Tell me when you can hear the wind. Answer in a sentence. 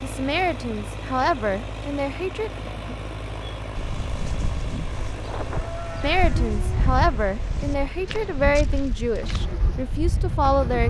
The wind can be heard from 5.2 to 10.8 s.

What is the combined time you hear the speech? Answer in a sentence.
You can hear the speech for 7 seconds altogether.